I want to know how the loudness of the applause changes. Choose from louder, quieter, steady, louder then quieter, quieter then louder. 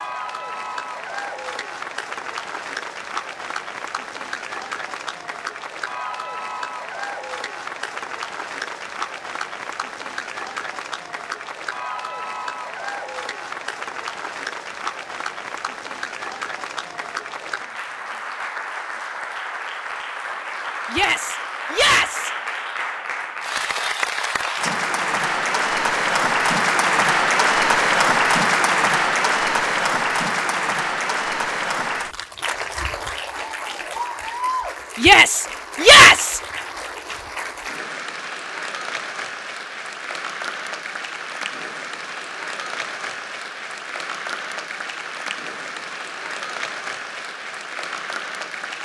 louder then quieter.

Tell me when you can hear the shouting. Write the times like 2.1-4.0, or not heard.
20.9-22.3, 35.0-36.4.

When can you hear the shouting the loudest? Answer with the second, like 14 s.
36 s.